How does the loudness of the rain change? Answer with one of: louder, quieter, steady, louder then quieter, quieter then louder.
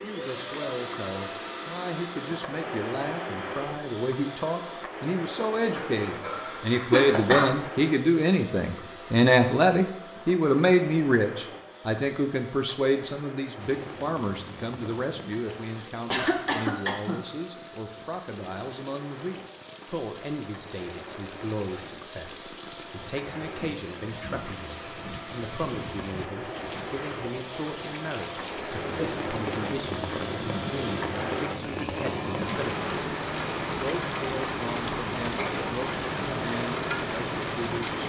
louder.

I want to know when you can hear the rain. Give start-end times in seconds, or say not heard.
13.6-38.0.